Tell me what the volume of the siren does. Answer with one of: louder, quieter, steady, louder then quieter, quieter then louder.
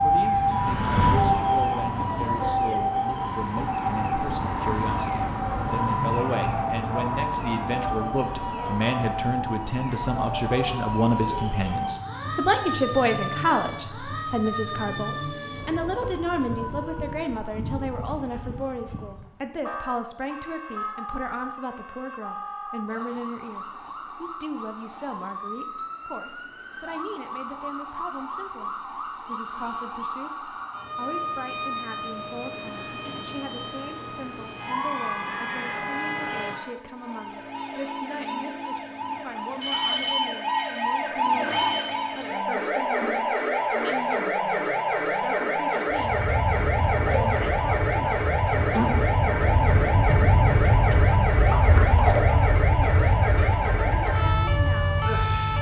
quieter then louder.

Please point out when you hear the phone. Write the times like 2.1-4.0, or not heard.
not heard.